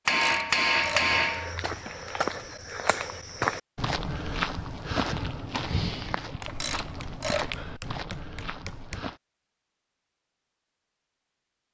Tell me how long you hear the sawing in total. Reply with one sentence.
The sawing can't be heard in this clip.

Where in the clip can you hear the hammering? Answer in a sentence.
The hammering can be heard from 0.1 to 1.6 s and from 6.4 to 9.1 s.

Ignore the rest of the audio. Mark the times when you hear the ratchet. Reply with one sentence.
The ratchet can be heard from 0.1 to 1.1 s and from 6.5 to 7.5 s.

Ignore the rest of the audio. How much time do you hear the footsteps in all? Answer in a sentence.
The footsteps can be heard for 8 seconds in total.